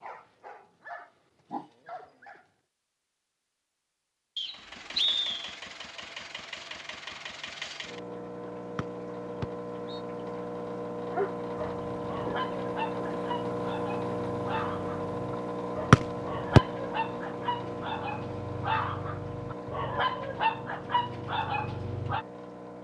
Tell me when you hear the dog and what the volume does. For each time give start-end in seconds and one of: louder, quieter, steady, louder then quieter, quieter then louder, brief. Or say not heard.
0.0-2.5 brief
11.0-22.2 louder.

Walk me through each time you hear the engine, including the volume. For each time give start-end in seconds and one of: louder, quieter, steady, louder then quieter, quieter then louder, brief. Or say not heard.
4.4-22.8 louder then quieter.